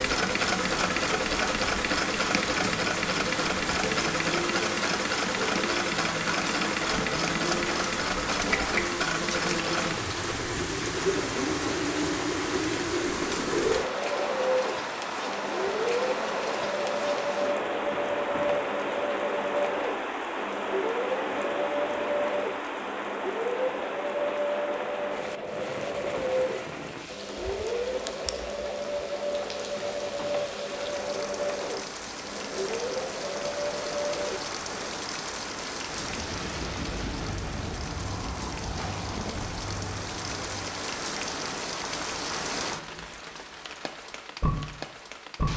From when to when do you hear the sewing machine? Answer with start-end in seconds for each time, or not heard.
0.0-35.0.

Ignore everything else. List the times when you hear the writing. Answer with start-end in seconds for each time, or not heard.
not heard.